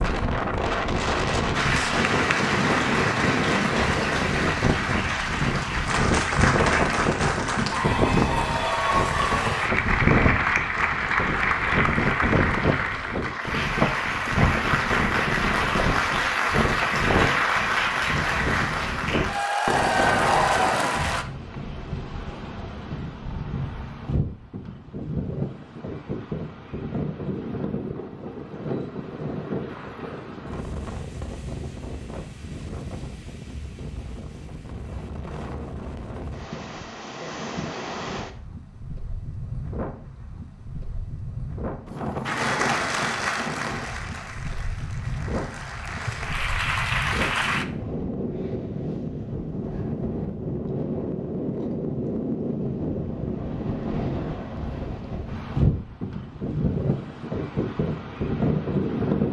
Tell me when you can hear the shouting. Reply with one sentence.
You can't hear the shouting here.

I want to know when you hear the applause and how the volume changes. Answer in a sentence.
The applause can be heard from 1.5 to 21.2 s, at a steady volume; and from 42.2 to 47.6 s, getting quieter then louder.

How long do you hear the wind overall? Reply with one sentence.
You can hear the wind for 59 seconds altogether.